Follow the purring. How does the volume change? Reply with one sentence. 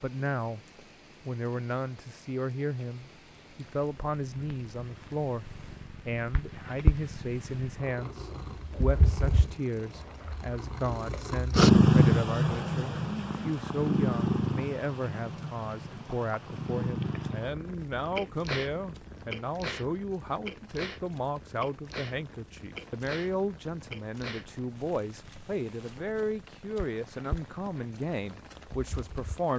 The volume of the purring goes up, then down.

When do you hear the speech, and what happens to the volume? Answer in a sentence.
The speech can be heard briefly from 0.0 to 0.6 s; and from 1.2 to 29.5 s, at a steady volume.